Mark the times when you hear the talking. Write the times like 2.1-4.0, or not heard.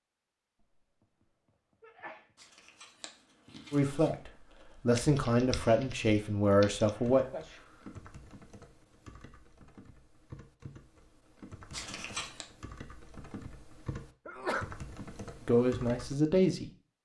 3.7-7.2, 15.4-16.7.